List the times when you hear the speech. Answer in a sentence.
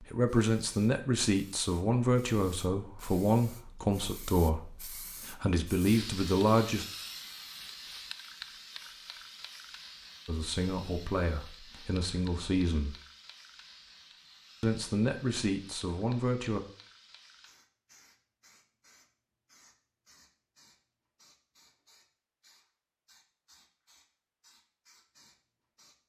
You can hear the speech from 0.0 to 6.8 s, from 10.2 to 12.9 s and from 14.6 to 16.6 s.